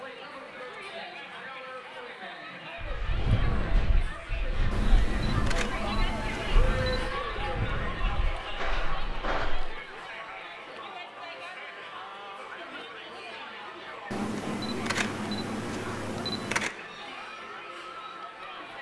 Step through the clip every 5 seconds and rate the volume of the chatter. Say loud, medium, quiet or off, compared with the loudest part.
medium, loud, medium, medium.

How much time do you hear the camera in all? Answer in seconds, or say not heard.
5 s.